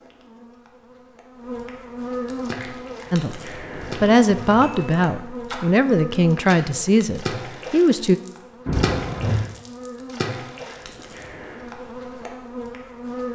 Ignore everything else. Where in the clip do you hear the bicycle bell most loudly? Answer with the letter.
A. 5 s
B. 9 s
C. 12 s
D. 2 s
B.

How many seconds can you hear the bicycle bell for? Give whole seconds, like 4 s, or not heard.
2 s.